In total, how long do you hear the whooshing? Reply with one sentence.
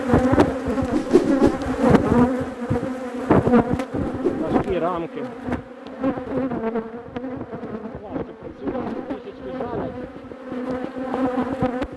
The whooshing can be heard for 2 seconds in total.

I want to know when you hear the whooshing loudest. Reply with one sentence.
The volume of the whooshing peaks at 1 second.